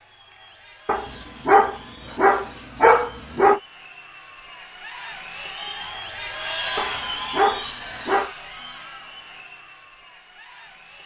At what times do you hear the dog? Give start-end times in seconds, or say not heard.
0.8-3.6, 6.8-8.3.